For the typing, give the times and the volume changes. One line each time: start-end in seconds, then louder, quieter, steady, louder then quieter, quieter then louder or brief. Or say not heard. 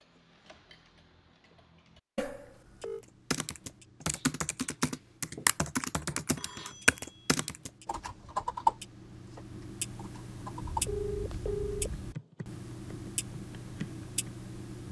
3.3-14.4 quieter.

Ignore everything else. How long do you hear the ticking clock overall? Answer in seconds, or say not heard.
15 s.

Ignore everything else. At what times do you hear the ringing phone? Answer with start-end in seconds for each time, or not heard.
2.1-3.0, 6.3-7.3, 10.7-12.0.